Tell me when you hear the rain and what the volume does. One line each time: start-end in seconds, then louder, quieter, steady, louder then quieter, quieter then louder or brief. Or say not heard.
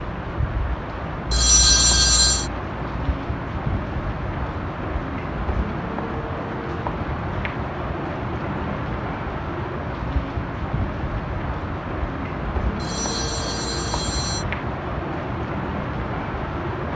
0.0-16.9 steady.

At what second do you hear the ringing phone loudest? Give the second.
2 s.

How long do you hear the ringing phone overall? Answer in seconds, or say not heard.
3 s.